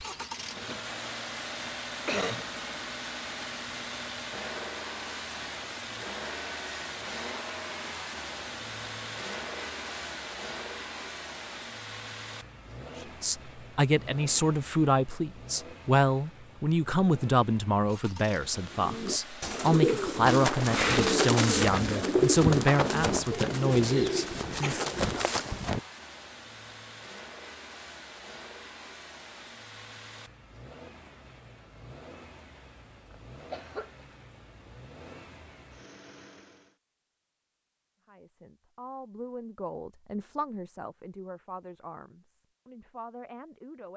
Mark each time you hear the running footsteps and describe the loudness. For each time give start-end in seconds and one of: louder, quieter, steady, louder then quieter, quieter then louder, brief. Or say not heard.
20.2-25.8 quieter then louder.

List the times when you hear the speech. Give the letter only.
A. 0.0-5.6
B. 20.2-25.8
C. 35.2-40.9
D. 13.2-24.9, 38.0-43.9
D.